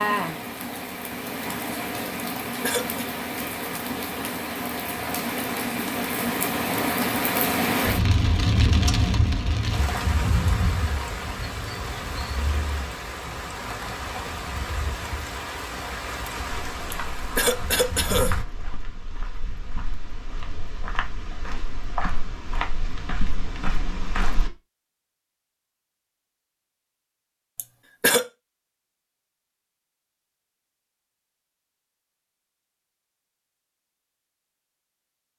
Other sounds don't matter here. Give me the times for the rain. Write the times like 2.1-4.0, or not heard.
0.0-18.4.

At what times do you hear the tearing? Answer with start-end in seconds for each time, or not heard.
not heard.